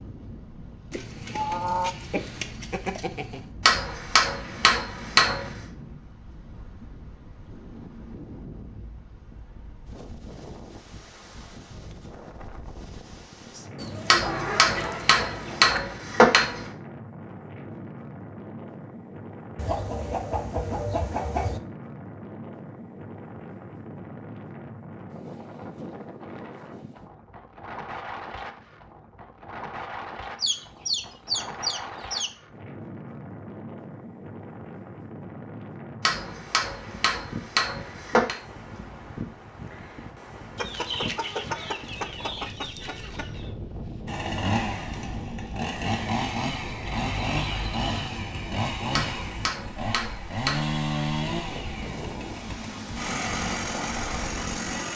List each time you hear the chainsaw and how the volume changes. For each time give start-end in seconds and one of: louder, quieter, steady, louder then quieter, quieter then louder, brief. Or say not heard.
44.0-54.9 steady.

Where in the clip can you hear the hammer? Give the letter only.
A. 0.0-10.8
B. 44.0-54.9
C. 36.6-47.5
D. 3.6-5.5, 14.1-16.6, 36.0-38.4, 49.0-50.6
D.